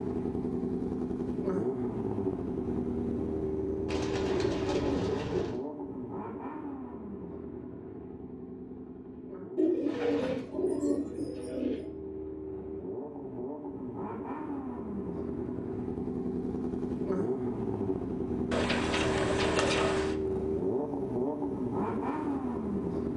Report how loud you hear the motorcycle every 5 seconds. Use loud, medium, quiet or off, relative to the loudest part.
loud, medium, medium, loud, loud.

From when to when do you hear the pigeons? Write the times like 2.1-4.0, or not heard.
3.9-5.6, 9.6-11.9, 18.5-20.1.